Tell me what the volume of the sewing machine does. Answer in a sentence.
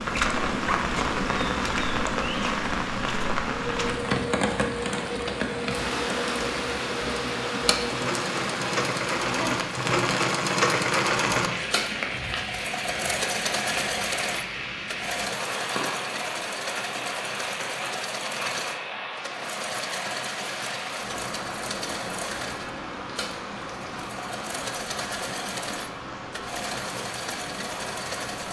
The loudness of the sewing machine goes up, then down.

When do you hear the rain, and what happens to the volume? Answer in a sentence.
You can hear the rain from 0.0 to 28.4 s, getting quieter.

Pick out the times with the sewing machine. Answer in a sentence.
The sewing machine can be heard from 0.0 to 28.4 s.